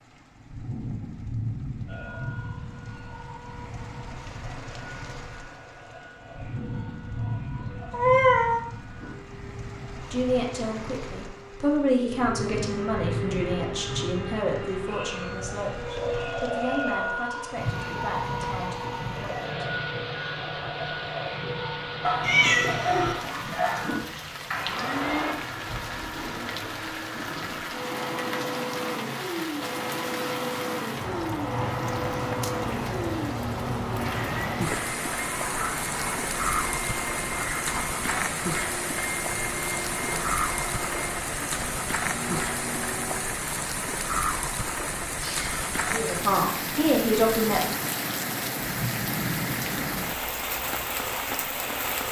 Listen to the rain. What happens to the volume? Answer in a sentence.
The loudness of the rain goes up.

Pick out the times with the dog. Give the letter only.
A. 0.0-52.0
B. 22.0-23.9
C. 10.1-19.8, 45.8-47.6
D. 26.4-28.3
B.